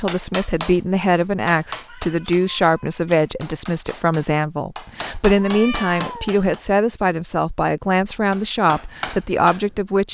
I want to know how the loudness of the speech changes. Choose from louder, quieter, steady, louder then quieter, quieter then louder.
steady.